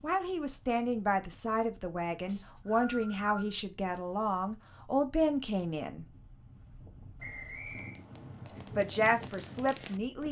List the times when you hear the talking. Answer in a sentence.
You can hear the talking from 0.0 to 6.0 s and from 8.8 to 10.2 s.